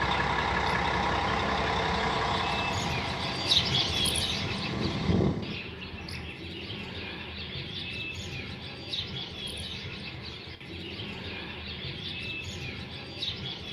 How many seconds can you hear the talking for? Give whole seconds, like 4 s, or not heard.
not heard.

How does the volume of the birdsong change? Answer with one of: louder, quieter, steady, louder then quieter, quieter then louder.
louder then quieter.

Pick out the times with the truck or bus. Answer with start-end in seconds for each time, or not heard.
0.0-5.6.